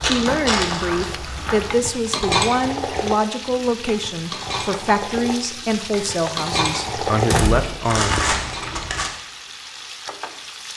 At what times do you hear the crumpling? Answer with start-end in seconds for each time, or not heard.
0.0-1.0, 7.8-9.1.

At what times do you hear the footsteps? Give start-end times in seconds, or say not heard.
0.0-1.9.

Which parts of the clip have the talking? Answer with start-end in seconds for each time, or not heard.
0.0-8.2.